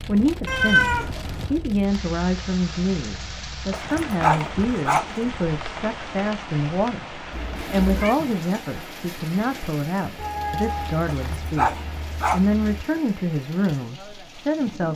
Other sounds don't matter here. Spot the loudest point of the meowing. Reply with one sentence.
The volume of the meowing peaks at 1 second.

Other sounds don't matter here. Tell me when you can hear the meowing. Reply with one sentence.
The meowing can be heard from 0.5 to 1.6 s, from 7.3 to 8.2 s and from 10.2 to 12.8 s.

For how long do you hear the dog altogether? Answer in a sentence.
You can hear the dog for 3 seconds altogether.